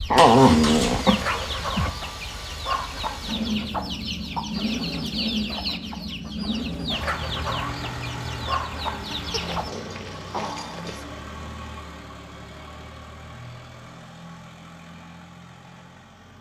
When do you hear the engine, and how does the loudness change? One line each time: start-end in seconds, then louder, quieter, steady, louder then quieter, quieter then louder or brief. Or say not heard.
0.0-16.3 quieter.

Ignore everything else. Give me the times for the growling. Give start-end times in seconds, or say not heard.
0.1-1.9, 9.3-11.1.